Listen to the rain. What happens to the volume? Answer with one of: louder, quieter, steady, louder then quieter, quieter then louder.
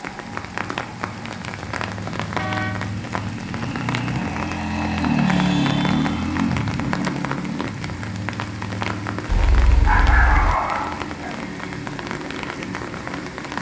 steady.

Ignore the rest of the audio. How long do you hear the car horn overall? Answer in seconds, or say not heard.
3 s.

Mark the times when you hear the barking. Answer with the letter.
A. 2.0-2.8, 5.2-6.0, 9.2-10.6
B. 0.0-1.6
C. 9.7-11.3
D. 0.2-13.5
C.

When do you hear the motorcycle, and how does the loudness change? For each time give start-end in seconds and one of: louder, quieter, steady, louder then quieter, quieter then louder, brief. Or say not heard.
0.2-13.5 louder then quieter.